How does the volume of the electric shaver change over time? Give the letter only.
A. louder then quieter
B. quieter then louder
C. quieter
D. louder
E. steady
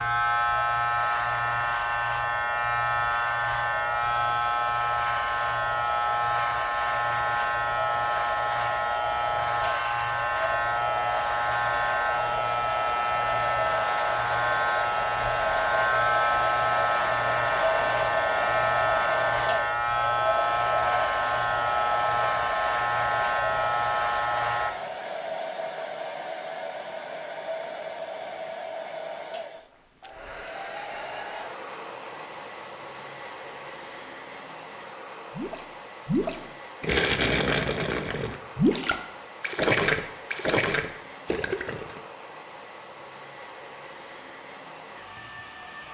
E.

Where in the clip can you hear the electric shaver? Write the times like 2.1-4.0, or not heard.
0.0-24.7.